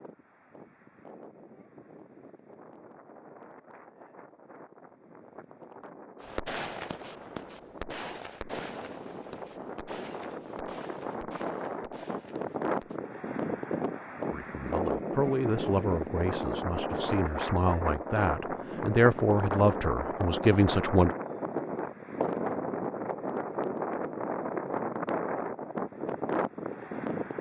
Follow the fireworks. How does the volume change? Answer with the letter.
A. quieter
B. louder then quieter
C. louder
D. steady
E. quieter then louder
A.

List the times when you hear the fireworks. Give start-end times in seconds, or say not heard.
6.2-13.0.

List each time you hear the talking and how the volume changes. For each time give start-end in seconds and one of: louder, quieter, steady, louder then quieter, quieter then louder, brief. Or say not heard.
14.3-21.1 quieter then louder.